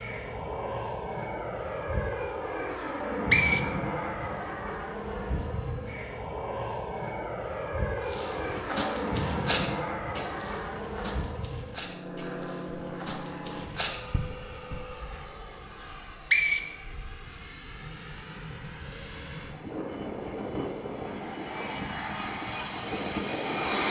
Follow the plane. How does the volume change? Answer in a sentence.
The volume of the plane goes down, then up.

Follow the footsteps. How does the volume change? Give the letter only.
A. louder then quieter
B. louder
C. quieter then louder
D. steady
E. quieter
C.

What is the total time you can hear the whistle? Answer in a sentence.
The whistle can be heard for 3 seconds in total.